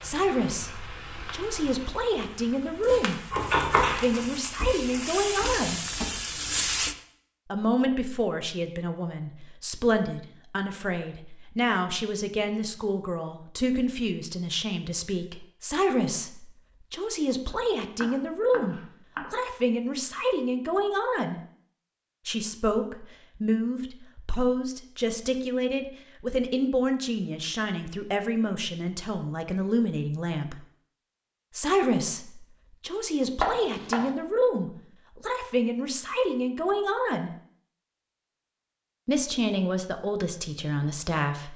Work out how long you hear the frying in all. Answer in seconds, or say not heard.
7 s.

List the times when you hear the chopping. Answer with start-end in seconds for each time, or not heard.
3.3-4.2, 17.5-19.3, 33.4-34.1.